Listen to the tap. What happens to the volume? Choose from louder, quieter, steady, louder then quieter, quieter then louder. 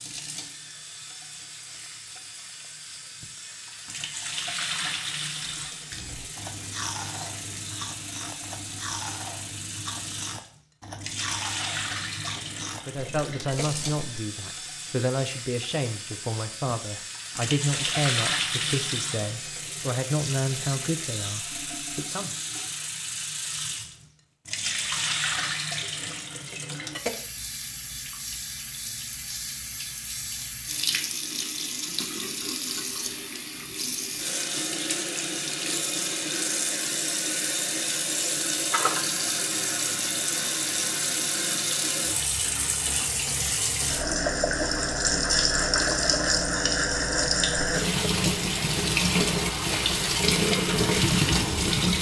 louder.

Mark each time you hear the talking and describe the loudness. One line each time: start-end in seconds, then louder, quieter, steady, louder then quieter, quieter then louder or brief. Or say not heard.
12.8-22.4 steady.